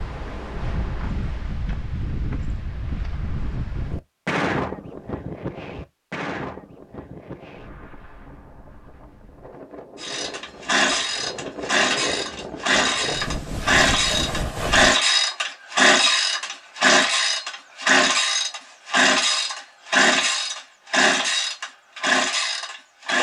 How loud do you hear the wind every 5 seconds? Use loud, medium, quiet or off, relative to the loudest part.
loud, medium, loud, off, off.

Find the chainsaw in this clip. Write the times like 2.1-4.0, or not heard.
9.9-23.1.